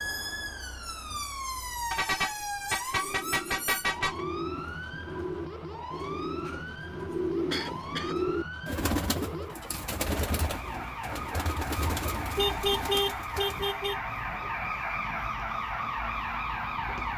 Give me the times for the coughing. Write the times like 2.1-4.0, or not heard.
7.5-8.2.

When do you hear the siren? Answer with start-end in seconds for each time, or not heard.
0.0-17.1.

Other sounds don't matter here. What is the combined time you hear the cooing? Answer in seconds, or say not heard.
11 s.